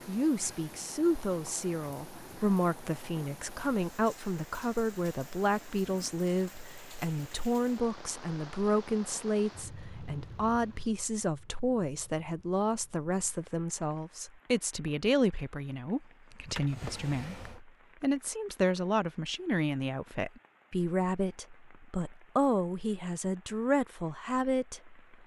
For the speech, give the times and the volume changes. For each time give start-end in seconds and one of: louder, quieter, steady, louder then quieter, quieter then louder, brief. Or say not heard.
0.1-25.1 steady.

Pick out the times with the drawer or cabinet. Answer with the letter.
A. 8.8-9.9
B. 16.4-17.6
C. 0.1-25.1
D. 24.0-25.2
B.